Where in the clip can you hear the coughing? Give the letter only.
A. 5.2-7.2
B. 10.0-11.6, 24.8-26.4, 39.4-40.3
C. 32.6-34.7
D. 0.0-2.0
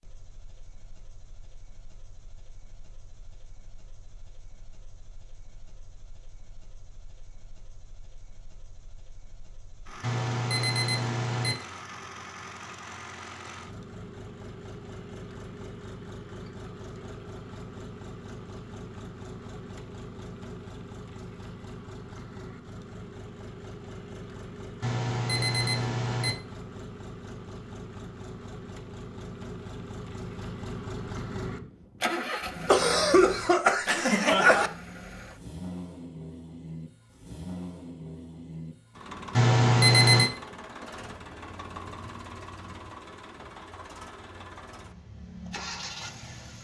C.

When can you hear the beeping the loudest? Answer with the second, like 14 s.
40 s.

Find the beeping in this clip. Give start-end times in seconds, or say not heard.
10.0-11.6, 24.8-26.4, 39.4-40.3.